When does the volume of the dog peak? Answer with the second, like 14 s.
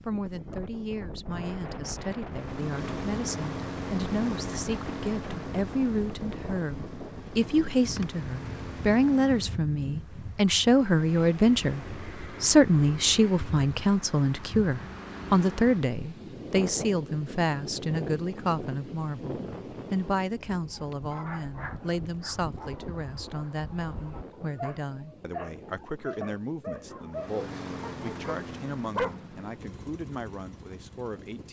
29 s.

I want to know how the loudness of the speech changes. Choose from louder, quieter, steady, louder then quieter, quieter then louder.
louder then quieter.